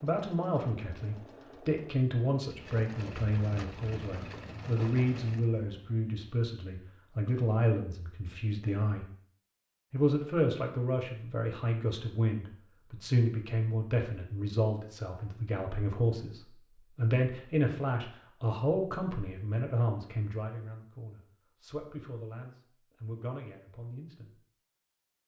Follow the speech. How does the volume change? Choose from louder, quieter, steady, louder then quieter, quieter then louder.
quieter.